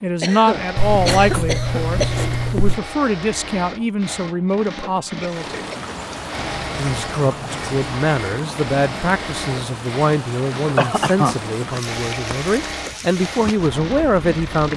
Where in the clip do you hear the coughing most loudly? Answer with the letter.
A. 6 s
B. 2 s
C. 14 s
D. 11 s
D.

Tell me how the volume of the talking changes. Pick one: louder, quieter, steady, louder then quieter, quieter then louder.
steady.